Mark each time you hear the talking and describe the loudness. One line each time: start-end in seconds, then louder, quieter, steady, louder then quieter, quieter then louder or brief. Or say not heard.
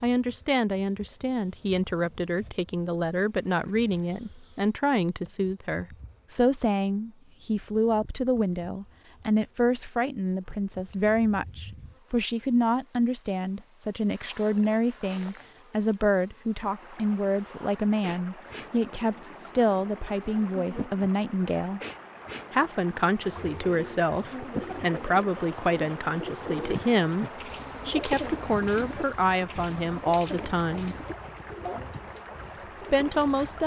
0.0-21.8 steady
22.5-30.9 steady
32.9-33.6 brief.